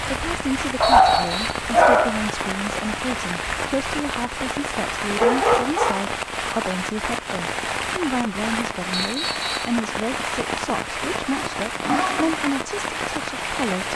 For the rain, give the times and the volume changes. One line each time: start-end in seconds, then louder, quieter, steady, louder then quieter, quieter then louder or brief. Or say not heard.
0.0-13.9 steady.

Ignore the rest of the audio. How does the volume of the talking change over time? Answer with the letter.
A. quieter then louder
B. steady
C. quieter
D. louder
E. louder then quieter
B.